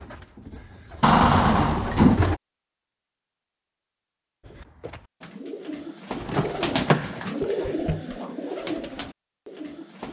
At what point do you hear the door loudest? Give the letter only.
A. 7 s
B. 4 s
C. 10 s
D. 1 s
D.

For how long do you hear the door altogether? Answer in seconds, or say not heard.
2 s.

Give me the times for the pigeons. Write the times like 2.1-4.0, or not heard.
0.0-2.4, 4.4-10.0.